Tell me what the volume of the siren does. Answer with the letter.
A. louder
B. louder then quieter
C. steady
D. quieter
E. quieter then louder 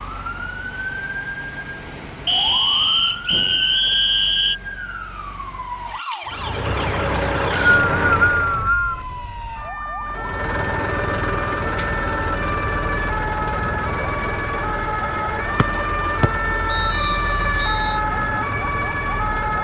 A.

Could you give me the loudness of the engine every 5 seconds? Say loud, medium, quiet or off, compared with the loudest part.
off, loud, loud, medium.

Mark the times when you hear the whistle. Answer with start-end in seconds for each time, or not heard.
2.2-4.5, 7.1-9.0, 15.6-17.9.